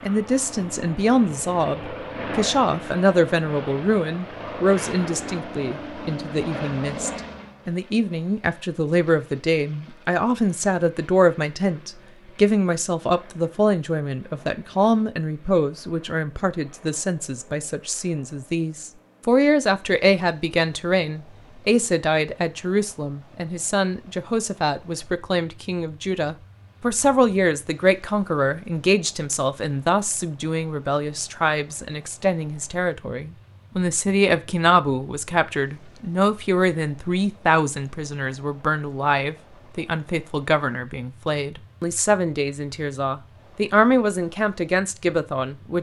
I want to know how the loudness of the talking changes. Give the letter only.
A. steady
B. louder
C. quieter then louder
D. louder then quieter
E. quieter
A.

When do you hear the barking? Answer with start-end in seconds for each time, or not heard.
not heard.